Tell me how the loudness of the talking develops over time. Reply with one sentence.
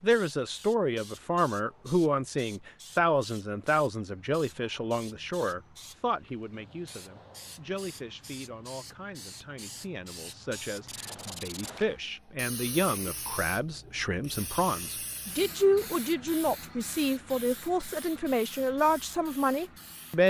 The volume of the talking goes down, then up.